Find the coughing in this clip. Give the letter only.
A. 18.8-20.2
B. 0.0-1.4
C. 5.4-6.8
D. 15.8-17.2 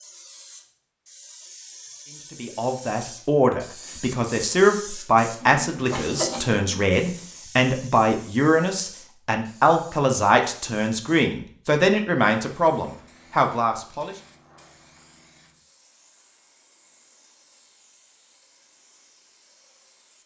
C.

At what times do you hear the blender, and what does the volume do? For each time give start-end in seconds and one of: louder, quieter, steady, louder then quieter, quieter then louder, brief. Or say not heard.
not heard.